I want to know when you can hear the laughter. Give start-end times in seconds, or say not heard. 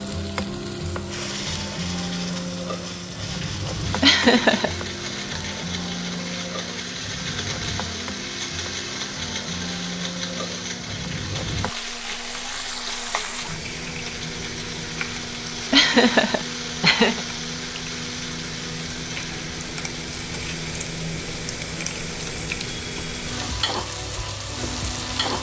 4.0-4.8, 15.7-17.2.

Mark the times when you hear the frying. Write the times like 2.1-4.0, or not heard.
0.0-25.3.